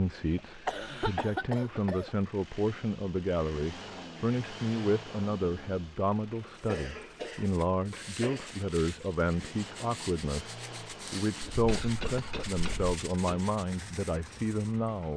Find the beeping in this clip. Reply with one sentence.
The beeping can't be heard in this clip.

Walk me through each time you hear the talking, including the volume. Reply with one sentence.
You can hear the talking from 0.0 to 15.1 s, at a steady volume.